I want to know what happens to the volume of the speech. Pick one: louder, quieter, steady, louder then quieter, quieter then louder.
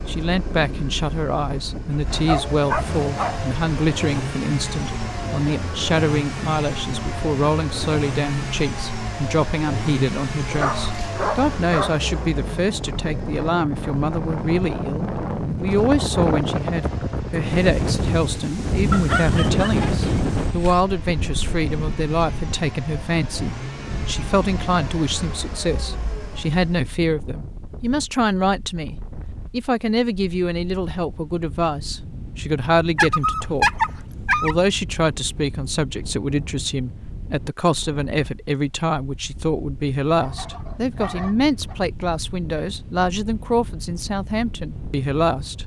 steady.